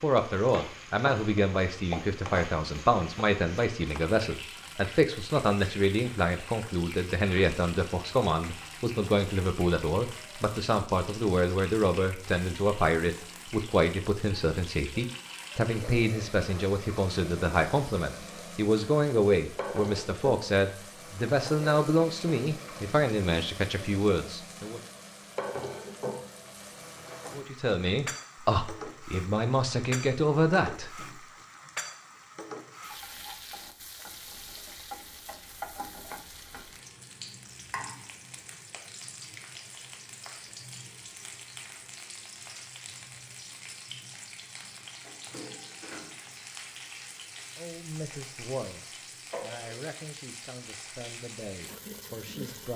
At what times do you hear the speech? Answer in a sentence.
You can hear the speech from 0.0 to 24.8 s, from 27.4 to 31.1 s and from 47.5 to 52.7 s.